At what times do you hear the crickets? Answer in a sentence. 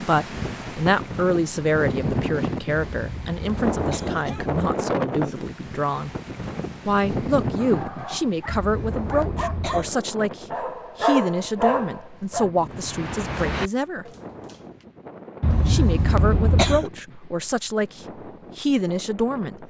The crickets can't be heard in this clip.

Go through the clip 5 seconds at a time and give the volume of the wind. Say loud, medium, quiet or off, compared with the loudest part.
loud, loud, quiet, quiet.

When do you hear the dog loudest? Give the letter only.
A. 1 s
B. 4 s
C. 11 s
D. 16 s
C.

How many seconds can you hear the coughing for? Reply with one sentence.
You can hear the coughing for 5 seconds altogether.